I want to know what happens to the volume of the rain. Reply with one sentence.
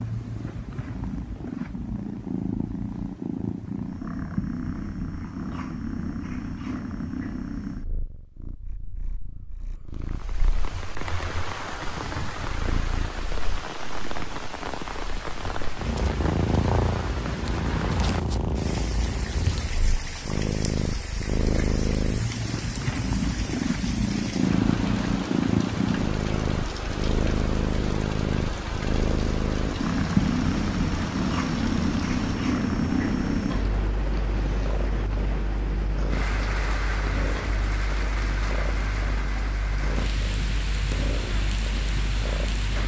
The volume of the rain stays about the same.